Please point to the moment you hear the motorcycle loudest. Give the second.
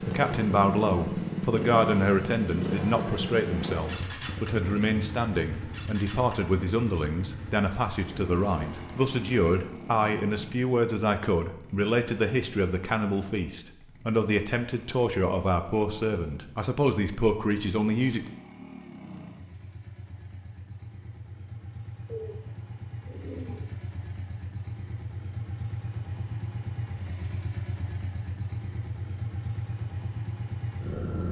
1 s.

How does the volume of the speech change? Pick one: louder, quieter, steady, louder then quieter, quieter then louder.
steady.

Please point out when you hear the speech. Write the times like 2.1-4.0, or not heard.
0.0-18.2.